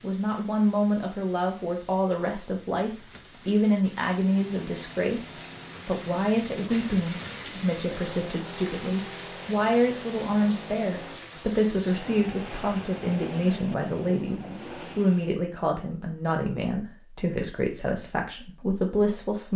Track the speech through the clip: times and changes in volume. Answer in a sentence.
The speech can be heard from 0.0 to 19.5 s, at a steady volume.